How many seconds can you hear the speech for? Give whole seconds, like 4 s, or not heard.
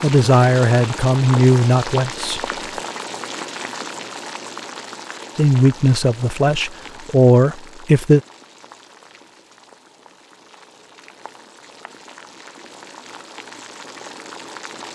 5 s.